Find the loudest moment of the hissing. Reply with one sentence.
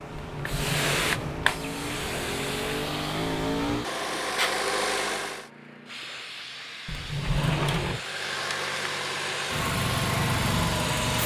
The volume of the hissing peaks at 1 second.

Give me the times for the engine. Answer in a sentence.
The engine can be heard from 0.0 to 5.5 s and from 7.8 to 11.2 s.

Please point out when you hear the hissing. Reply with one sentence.
You can hear the hissing from 0.0 to 11.2 s.